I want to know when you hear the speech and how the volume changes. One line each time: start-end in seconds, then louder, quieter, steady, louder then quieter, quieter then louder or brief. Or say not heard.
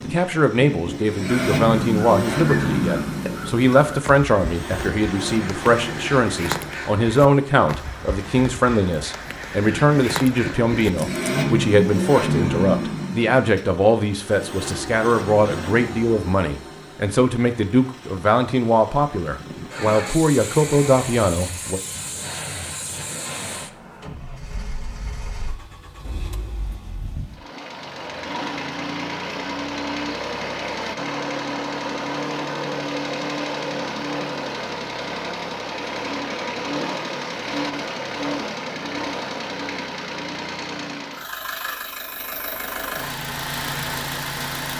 0.0-21.8 steady.